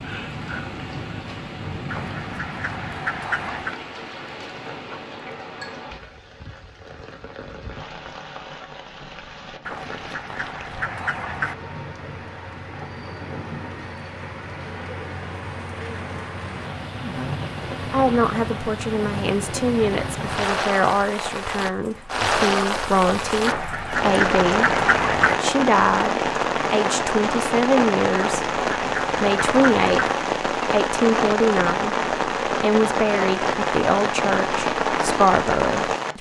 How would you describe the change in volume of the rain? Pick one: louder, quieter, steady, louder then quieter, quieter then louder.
louder.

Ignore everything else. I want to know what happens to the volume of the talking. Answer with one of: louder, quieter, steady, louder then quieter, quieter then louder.
steady.